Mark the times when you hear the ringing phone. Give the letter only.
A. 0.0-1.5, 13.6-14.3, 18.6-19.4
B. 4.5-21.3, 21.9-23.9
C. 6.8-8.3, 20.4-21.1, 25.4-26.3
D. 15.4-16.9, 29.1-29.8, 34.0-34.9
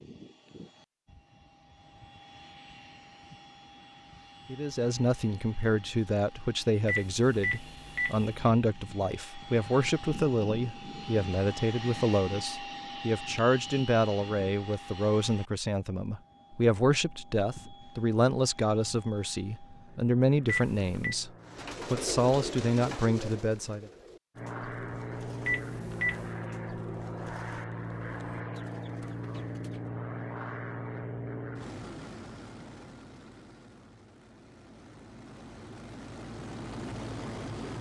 C.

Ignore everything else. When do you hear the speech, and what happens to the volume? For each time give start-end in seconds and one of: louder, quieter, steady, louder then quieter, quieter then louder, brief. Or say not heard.
4.5-21.3 steady
21.9-23.9 brief.